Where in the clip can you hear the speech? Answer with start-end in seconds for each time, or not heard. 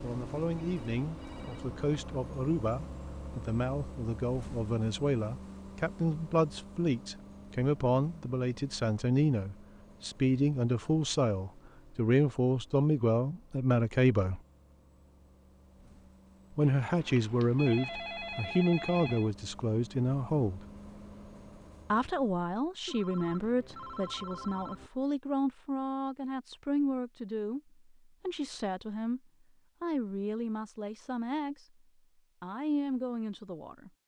0.0-14.4, 16.6-20.6, 21.9-29.2, 29.8-31.6, 32.4-33.9.